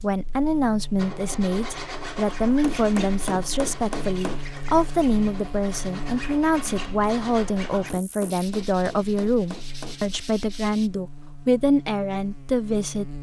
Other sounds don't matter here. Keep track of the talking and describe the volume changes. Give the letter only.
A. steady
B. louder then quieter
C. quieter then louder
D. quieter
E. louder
A.